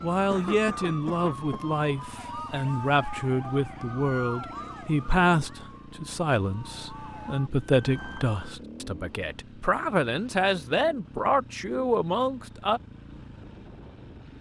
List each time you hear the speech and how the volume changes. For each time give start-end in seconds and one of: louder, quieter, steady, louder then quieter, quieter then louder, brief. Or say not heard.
0.0-12.8 steady.